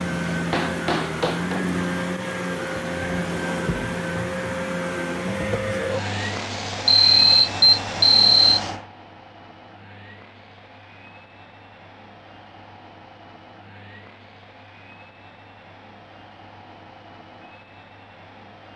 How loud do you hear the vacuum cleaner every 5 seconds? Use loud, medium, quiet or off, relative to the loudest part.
loud, loud, quiet, quiet.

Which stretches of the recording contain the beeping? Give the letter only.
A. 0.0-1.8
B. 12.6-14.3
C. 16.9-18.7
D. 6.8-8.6
D.